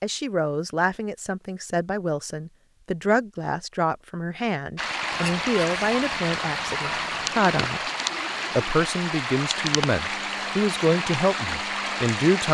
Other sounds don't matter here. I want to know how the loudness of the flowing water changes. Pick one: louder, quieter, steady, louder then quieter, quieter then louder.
steady.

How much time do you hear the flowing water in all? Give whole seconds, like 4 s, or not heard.
8 s.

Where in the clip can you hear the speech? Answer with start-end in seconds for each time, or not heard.
0.0-7.8, 8.6-12.4.